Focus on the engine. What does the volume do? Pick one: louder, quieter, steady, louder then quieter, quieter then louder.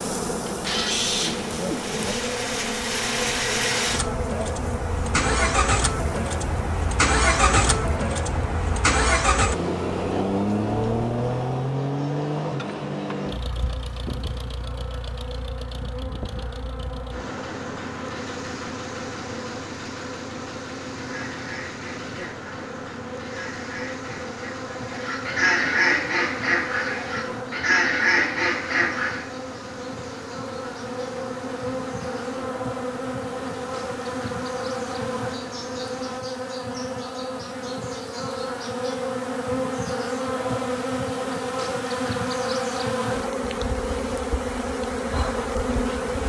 quieter.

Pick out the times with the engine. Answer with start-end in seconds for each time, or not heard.
0.5-36.2.